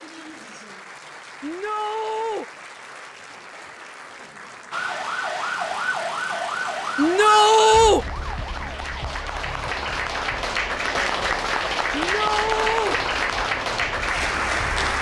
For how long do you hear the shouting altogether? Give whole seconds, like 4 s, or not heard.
3 s.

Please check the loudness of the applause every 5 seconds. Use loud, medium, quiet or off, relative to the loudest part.
quiet, medium, loud.